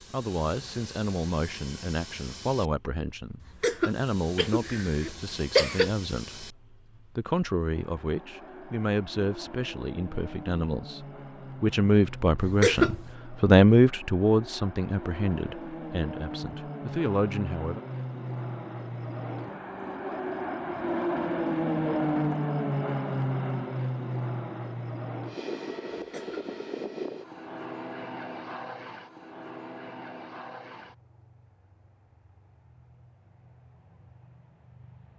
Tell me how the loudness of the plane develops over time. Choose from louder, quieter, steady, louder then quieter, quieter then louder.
louder then quieter.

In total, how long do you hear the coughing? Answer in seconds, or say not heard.
3 s.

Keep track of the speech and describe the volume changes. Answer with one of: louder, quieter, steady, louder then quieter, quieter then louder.
louder then quieter.